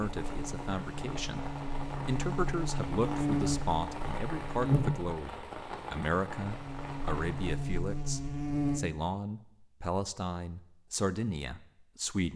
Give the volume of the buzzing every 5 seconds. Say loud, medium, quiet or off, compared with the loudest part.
loud, loud, off.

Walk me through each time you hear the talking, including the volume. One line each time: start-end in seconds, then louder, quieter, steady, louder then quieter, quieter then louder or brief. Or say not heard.
0.0-1.4 brief
2.0-12.3 steady.